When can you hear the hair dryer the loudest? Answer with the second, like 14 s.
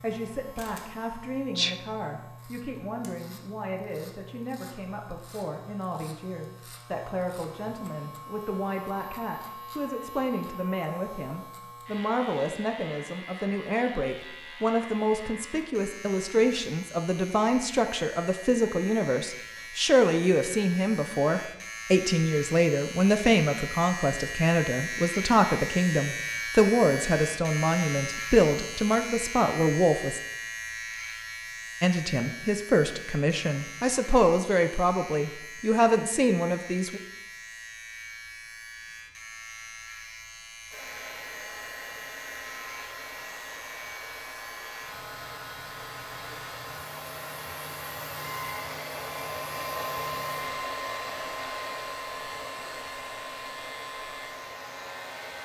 50 s.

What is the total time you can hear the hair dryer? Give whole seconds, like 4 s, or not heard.
15 s.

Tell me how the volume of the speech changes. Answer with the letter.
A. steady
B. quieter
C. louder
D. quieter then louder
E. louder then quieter
C.